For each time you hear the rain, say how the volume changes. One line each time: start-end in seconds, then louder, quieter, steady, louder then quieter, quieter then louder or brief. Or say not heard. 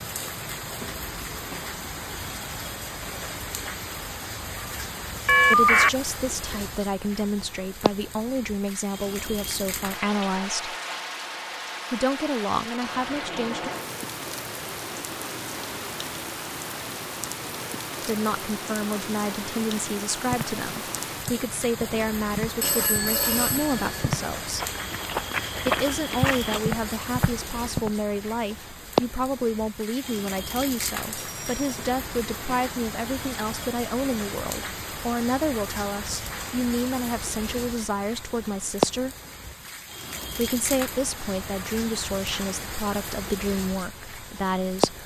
0.0-45.0 steady.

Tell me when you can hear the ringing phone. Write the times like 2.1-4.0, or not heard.
5.2-5.9, 22.6-24.1, 31.2-31.6.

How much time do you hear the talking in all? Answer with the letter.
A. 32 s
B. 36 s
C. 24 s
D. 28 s
A.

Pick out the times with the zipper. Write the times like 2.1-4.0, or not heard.
not heard.